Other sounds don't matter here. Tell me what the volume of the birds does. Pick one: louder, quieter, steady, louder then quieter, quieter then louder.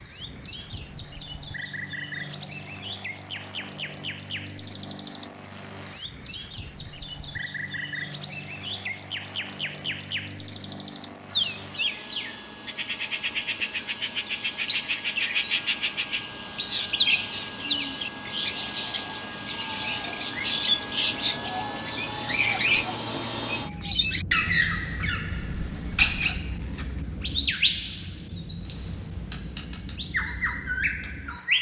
louder then quieter.